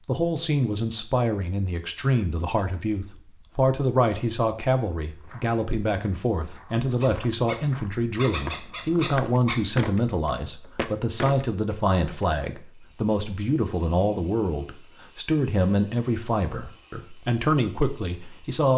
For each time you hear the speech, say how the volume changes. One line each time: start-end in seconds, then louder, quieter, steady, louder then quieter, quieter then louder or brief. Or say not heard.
0.1-18.7 steady.